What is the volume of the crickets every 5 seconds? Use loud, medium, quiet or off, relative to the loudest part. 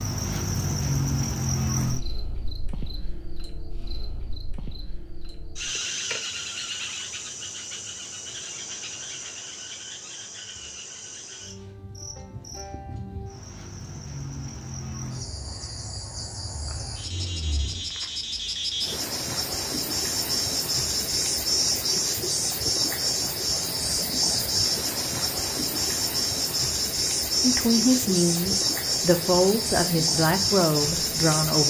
medium, medium, quiet, medium, loud, loud, loud.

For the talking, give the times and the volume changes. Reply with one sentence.
You can hear the talking from 27.4 to 31.6 s, at a steady volume.